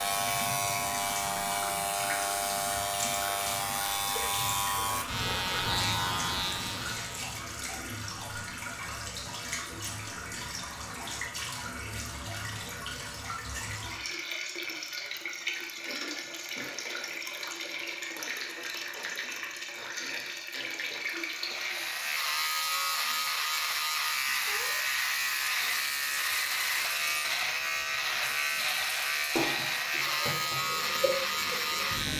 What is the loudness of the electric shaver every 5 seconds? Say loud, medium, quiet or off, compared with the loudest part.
loud, loud, off, off, loud, loud, loud.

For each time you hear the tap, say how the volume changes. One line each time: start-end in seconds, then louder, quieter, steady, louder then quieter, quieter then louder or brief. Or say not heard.
0.0-32.1 steady.